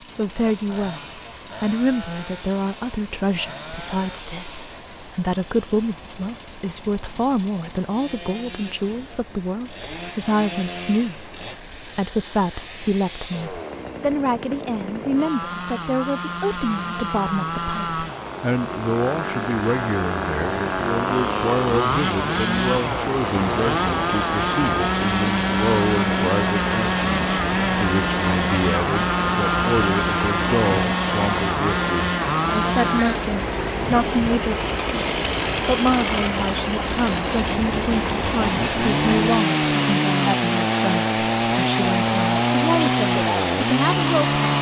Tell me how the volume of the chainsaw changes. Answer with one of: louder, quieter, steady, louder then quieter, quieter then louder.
louder.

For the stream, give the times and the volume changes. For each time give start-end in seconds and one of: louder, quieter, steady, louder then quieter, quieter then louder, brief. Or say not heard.
0.0-44.5 louder.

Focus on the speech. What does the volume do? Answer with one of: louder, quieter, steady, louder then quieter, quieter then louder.
steady.